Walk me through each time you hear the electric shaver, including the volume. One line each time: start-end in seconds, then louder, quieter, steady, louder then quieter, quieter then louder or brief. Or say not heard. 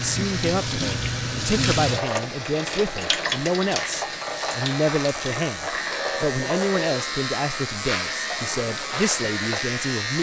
0.0-10.1 louder.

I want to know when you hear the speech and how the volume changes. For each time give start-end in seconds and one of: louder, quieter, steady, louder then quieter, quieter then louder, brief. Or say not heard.
0.0-10.1 steady.